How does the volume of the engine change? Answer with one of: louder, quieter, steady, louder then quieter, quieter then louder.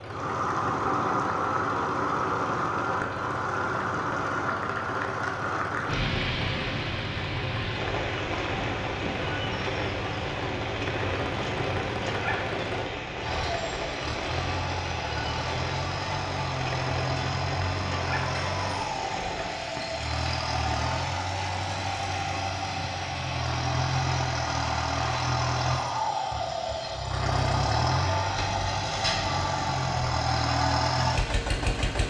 louder.